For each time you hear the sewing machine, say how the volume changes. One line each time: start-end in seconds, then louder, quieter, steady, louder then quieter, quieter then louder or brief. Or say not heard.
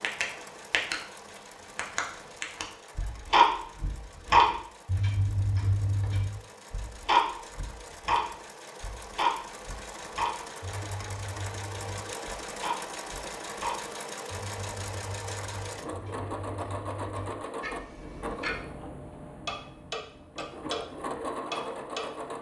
0.0-22.3 louder.